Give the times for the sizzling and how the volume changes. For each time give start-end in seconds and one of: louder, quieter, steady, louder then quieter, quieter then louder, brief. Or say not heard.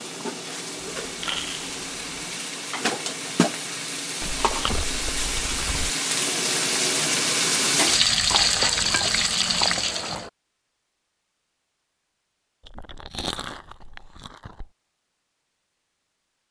0.0-10.2 louder.